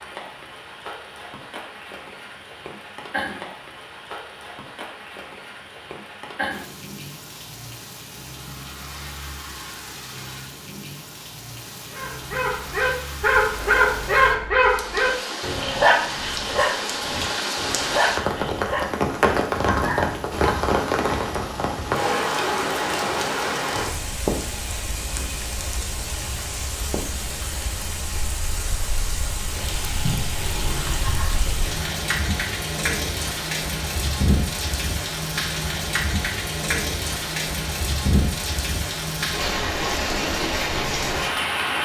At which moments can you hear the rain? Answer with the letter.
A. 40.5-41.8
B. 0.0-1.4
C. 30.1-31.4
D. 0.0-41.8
D.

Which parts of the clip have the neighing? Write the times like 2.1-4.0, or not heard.
30.1-31.4.